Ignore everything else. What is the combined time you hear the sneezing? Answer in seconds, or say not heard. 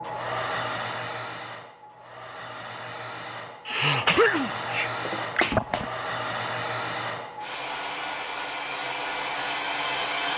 2 s.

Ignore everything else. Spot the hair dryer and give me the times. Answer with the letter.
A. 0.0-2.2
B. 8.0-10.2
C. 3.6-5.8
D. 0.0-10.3
D.